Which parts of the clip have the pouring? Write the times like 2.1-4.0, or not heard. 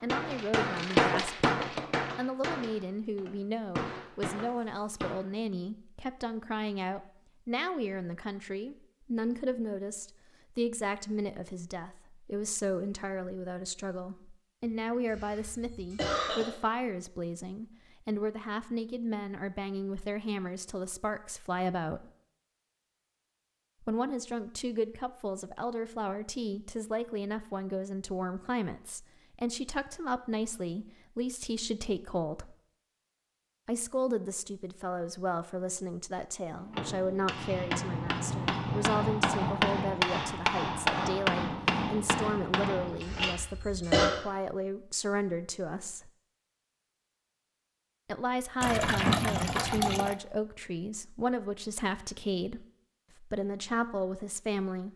48.6-50.1.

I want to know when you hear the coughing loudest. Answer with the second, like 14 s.
44 s.